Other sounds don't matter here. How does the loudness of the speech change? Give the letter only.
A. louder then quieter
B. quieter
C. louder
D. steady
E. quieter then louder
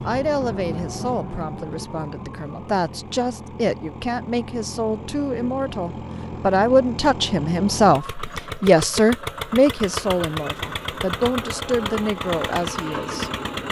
A.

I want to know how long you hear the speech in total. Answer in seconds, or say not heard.
13 s.